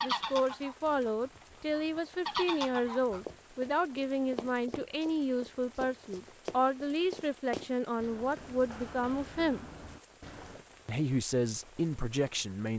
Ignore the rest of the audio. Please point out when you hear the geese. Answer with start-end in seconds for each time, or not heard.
0.0-3.2.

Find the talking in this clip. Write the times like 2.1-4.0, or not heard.
0.0-9.7, 10.8-12.7.